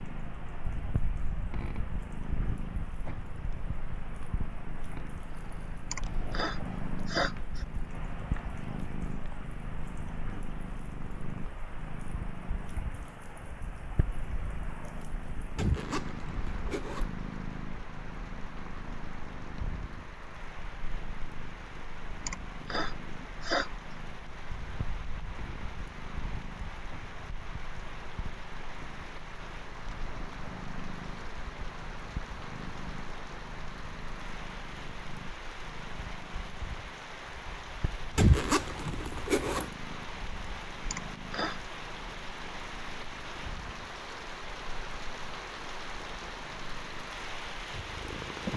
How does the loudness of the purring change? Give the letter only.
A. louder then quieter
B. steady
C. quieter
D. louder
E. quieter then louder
C.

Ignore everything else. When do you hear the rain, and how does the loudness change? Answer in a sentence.
You can hear the rain from 0.0 to 48.5 s, getting louder.